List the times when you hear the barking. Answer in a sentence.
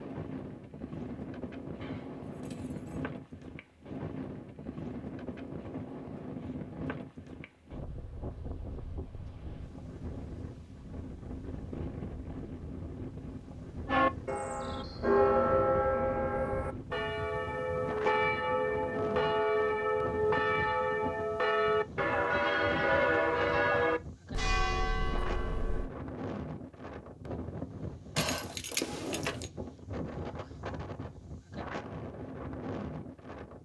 You can't hear the barking here.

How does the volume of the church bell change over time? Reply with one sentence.
The volume of the church bell stays about the same.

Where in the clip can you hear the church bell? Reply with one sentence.
You can hear the church bell from 13.8 to 25.9 s.